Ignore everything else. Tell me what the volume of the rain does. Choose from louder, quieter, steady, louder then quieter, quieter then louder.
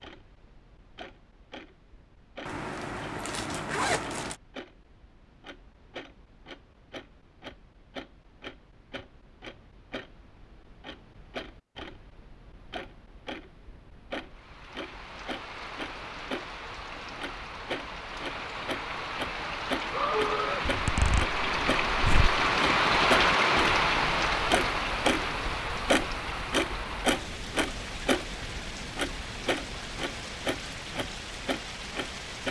louder then quieter.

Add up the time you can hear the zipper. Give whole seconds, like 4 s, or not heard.
4 s.